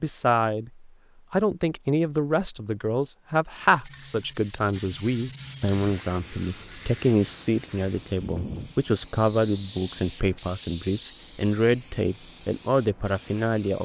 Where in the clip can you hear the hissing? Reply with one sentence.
You can hear the hissing from 3.8 to 13.8 s.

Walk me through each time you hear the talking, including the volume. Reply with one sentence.
You can hear the talking from 0.0 to 13.8 s, at a steady volume.